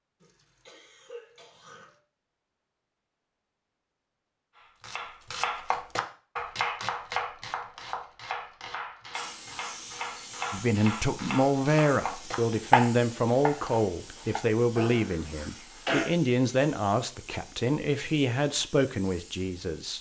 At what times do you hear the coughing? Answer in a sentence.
The coughing can be heard from 0.2 to 2.0 s and from 14.8 to 16.1 s.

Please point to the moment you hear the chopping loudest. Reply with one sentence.
The volume of the chopping peaks at 13 seconds.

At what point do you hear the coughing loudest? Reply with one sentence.
The loudest moment of the coughing is at 16 seconds.